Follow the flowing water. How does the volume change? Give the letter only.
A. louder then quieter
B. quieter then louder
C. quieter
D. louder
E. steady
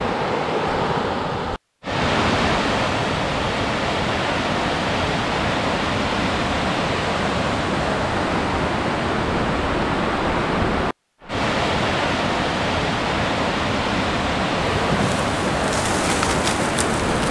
E.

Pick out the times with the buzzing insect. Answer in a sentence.
You can hear the buzzing insect from 14.7 to 17.2 s.